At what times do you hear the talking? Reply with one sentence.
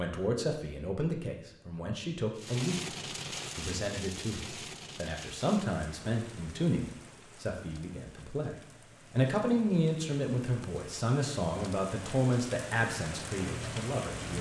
You can hear the talking from 0.0 to 3.0 s and from 3.5 to 14.3 s.